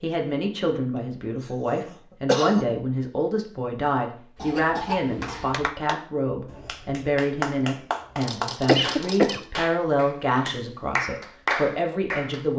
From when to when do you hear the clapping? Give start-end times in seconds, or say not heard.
5.2-12.5.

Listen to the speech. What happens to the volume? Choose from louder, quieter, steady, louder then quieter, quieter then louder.
steady.